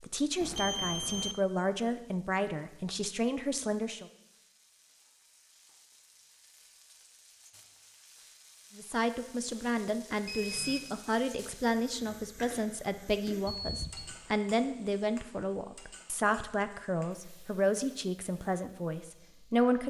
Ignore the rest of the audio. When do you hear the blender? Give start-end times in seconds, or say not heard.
not heard.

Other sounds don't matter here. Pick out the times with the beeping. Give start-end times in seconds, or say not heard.
0.4-1.4, 10.2-11.0, 13.4-14.2.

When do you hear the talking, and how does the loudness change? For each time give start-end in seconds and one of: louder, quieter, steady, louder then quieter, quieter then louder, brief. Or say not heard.
0.0-4.0 steady
8.8-19.8 steady.